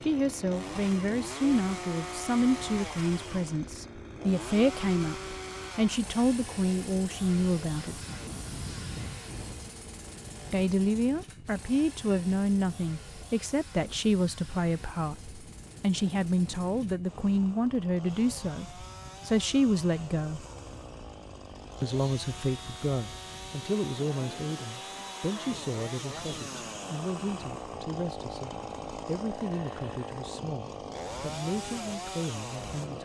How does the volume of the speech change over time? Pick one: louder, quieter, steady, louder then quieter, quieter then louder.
quieter.